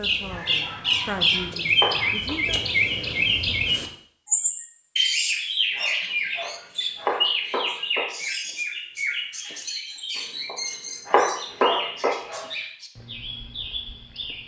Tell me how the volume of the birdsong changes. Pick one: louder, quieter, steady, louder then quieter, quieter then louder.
quieter.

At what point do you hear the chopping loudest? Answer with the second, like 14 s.
11 s.